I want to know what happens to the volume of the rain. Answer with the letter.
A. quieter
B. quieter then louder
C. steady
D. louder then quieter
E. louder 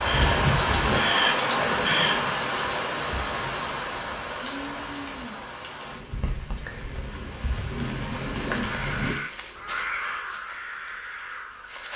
B.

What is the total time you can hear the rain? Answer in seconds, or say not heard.
9 s.